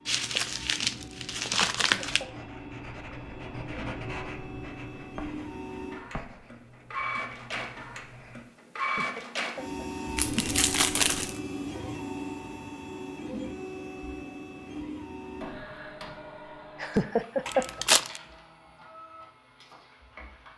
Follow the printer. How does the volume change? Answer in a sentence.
The volume of the printer goes up, then down.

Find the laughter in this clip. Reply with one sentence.
You can hear the laughter from 1.6 to 2.3 s, from 8.8 to 10.1 s and from 16.8 to 17.9 s.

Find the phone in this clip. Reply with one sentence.
You can't hear the phone here.